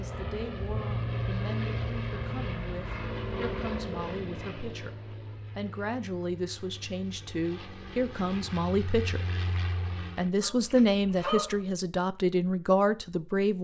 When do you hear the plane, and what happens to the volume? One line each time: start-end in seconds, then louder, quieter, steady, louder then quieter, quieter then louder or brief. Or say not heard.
0.0-10.3 quieter then louder.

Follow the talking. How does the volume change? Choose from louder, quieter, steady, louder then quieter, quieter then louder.
louder.